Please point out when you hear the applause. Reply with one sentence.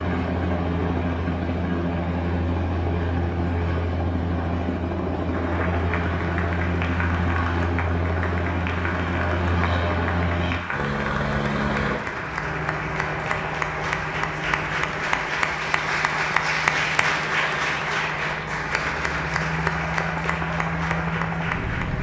You can hear the applause from 5.2 to 21.9 s.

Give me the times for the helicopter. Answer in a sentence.
You can hear the helicopter from 0.0 to 21.9 s.